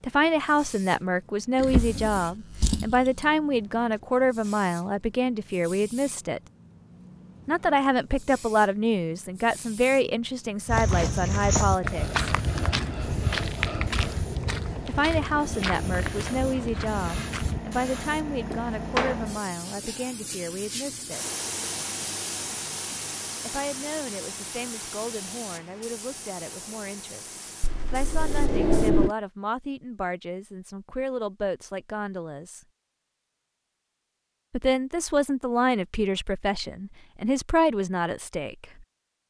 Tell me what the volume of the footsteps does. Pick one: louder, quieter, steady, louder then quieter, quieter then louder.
quieter.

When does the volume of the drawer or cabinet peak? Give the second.
29 s.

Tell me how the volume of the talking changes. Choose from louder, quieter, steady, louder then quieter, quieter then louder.
quieter then louder.